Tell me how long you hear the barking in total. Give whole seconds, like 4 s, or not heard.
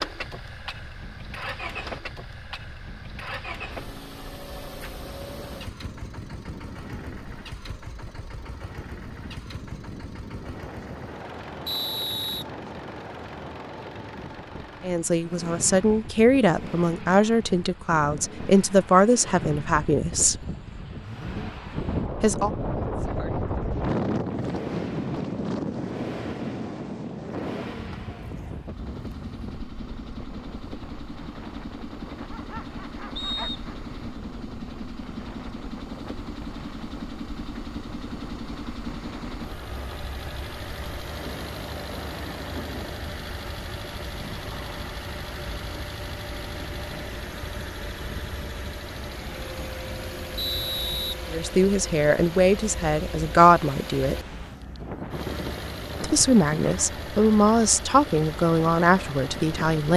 2 s.